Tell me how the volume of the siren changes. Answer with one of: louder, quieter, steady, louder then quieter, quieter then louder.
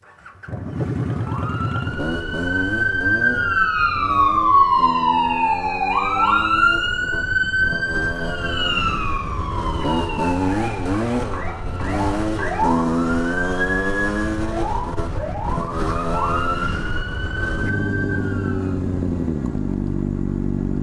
quieter.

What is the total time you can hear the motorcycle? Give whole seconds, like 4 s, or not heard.
21 s.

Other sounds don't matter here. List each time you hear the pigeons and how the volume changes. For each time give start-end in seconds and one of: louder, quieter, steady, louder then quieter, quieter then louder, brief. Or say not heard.
not heard.